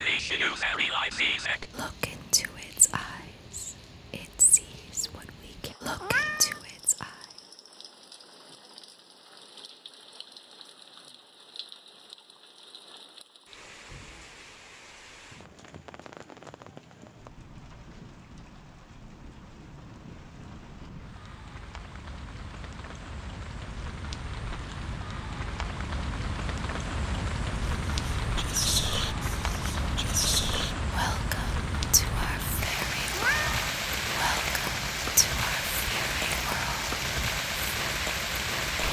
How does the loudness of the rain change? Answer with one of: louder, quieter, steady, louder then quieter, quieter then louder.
louder.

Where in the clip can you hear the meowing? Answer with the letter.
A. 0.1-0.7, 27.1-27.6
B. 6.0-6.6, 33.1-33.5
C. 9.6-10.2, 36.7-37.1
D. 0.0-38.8
B.